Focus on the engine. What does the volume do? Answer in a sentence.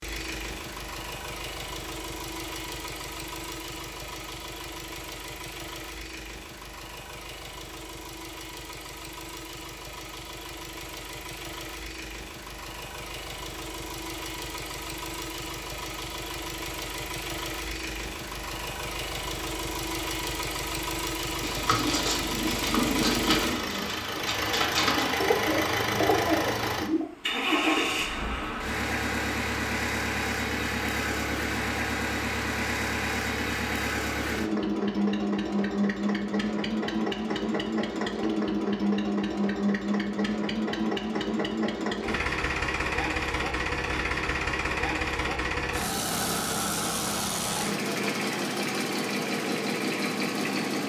The volume of the engine goes up.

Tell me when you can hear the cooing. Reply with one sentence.
The cooing can be heard from 21.4 to 27.1 s.